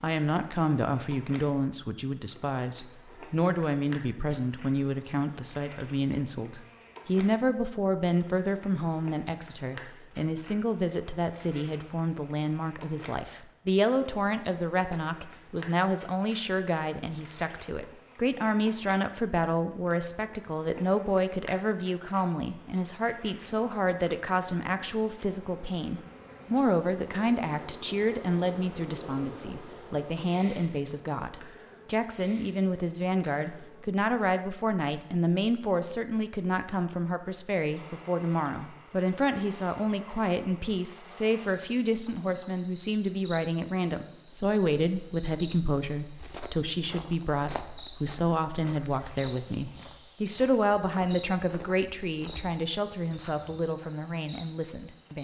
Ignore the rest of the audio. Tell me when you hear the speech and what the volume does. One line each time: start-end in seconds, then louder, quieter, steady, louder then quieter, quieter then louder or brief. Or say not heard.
0.0-55.1 steady.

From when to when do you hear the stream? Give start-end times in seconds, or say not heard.
not heard.